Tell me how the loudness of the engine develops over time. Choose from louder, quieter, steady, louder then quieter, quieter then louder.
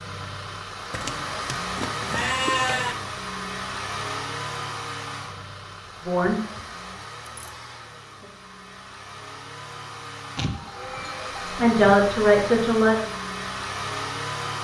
quieter then louder.